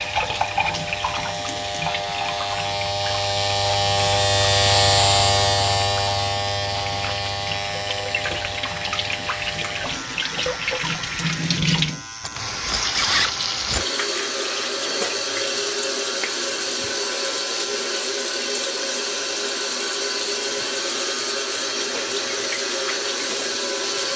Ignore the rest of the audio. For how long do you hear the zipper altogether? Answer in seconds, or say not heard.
2 s.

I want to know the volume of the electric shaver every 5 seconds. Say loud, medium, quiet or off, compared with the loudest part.
loud, loud, quiet, quiet, quiet.